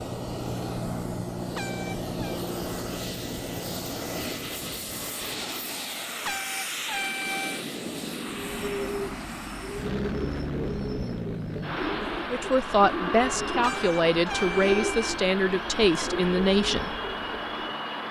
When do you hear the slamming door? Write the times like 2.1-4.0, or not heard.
not heard.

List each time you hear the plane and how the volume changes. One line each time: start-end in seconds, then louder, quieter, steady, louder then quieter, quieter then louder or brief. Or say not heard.
0.0-18.0 steady.